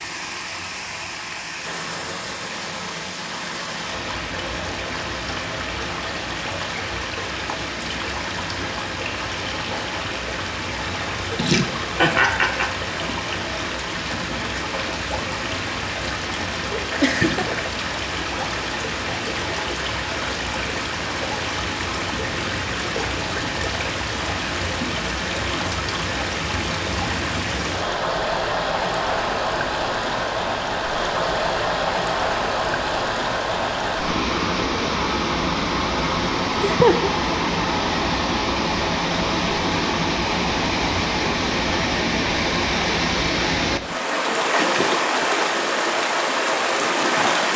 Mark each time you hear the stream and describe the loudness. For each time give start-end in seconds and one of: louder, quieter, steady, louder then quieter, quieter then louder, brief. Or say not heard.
0.0-47.5 louder.